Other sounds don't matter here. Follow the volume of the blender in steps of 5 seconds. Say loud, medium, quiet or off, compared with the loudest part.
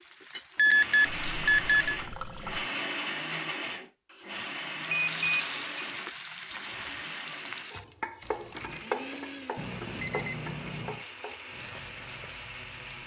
loud, medium, medium.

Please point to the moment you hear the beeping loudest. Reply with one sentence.
The loudest moment of the beeping is at 1 second.